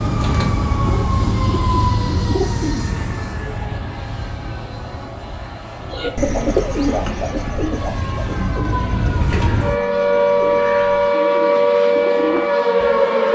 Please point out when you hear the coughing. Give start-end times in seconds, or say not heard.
not heard.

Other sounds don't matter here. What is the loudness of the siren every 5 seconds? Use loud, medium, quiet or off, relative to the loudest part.
medium, medium, loud.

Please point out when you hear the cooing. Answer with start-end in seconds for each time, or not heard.
0.1-3.0, 5.9-13.0.